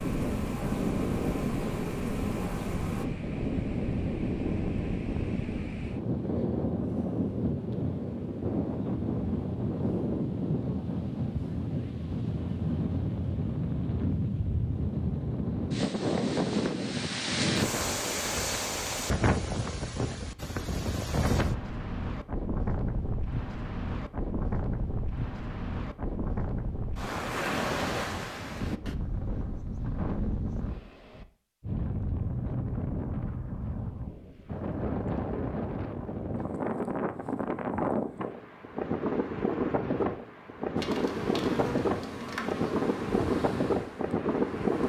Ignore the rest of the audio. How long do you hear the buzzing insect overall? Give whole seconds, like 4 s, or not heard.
7 s.